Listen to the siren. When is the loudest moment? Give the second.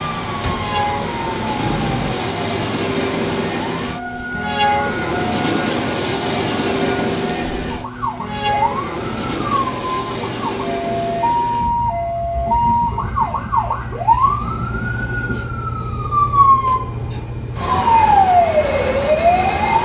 18 s.